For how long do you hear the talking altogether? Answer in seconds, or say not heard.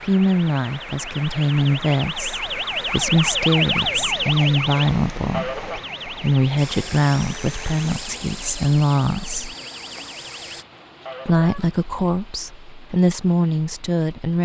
13 s.